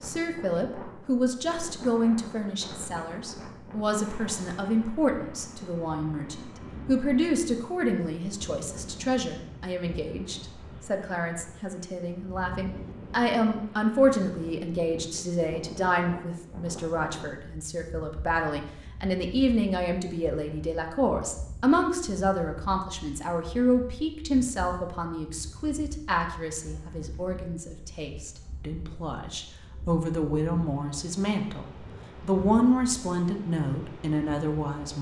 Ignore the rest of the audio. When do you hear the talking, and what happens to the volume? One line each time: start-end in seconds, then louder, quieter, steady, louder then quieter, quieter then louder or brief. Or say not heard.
0.0-34.9 steady.